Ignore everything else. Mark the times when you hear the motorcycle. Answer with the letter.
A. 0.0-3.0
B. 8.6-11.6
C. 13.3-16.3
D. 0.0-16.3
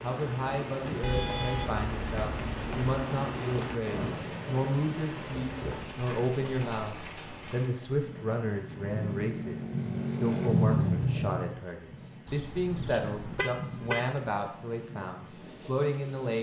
B.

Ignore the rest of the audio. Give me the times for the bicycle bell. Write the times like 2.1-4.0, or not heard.
not heard.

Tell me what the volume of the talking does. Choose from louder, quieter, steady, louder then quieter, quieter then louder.
steady.